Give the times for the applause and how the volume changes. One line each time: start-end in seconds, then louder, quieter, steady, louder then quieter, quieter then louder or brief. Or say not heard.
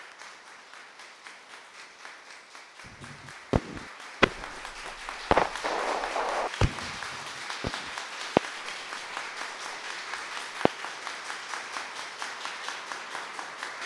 0.0-13.8 louder.